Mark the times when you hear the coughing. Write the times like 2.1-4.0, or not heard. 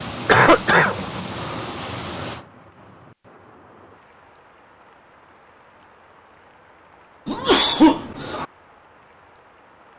0.2-1.6, 7.2-8.4.